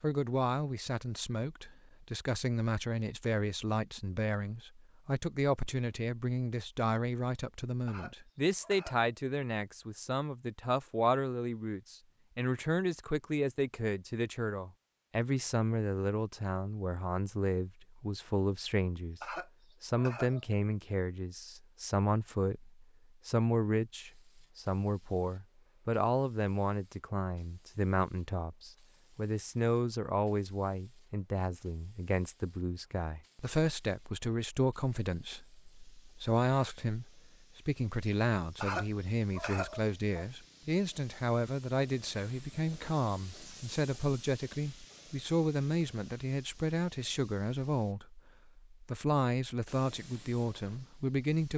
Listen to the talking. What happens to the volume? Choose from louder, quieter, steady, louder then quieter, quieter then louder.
steady.